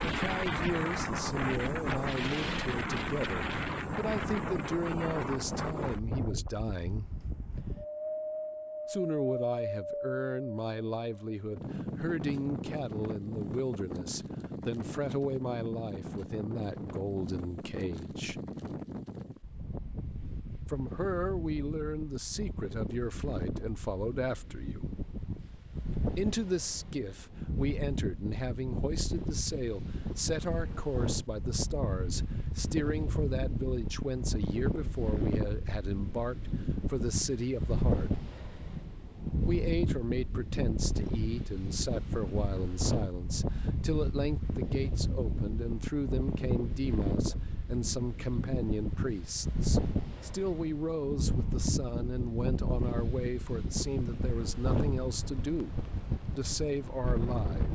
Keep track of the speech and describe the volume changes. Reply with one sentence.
The volume of the speech stays about the same.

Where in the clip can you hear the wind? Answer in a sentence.
You can hear the wind from 0.0 to 57.6 s.